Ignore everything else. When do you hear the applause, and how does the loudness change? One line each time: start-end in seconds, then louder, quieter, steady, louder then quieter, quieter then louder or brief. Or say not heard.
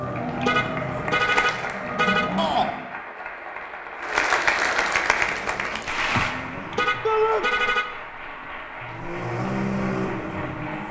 0.0-10.8 louder then quieter.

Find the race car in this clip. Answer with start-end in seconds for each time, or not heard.
0.0-3.0, 5.0-6.9, 8.8-10.8.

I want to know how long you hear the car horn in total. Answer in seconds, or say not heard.
3 s.